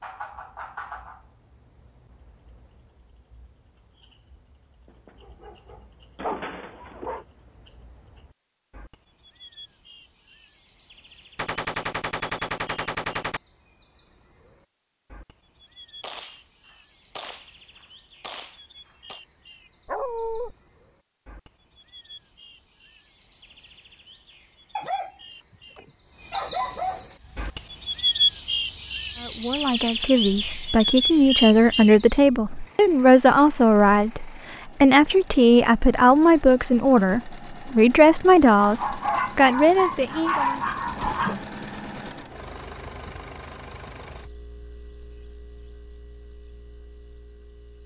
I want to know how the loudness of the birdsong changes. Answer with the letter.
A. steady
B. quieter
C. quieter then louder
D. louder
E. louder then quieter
C.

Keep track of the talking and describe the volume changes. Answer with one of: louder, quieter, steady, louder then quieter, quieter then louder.
steady.